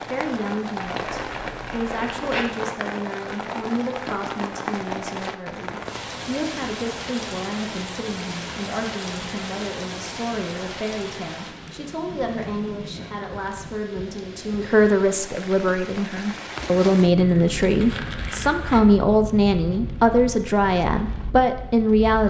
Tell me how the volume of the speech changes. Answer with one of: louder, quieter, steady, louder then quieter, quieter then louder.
louder.